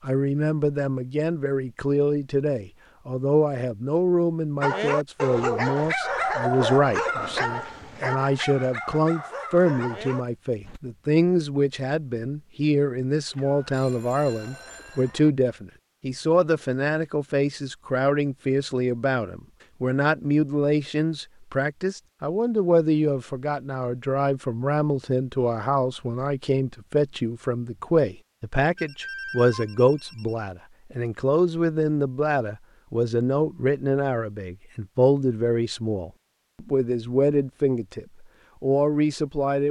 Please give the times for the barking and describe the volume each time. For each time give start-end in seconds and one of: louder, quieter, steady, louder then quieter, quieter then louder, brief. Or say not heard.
4.6-10.8 quieter.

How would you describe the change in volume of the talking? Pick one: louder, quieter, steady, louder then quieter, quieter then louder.
steady.